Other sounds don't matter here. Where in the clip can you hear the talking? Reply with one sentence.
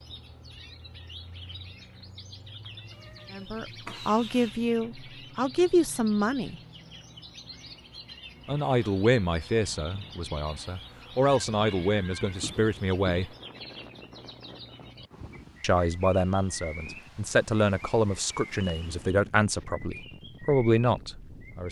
The talking can be heard from 3.3 to 6.5 s, from 8.4 to 13.3 s and from 15.6 to 21.6 s.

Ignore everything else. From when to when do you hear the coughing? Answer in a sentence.
You can't hear the coughing here.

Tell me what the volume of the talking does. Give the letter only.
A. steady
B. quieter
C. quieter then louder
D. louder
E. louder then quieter
A.